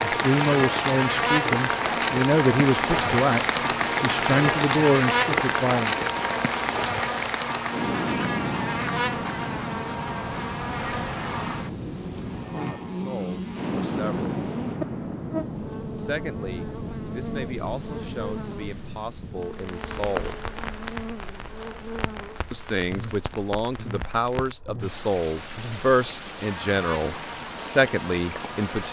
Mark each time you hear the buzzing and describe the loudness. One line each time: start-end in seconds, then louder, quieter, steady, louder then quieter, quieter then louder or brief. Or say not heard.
0.0-28.8 quieter.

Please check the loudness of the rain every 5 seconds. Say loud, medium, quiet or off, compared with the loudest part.
loud, loud, medium, medium, medium, medium.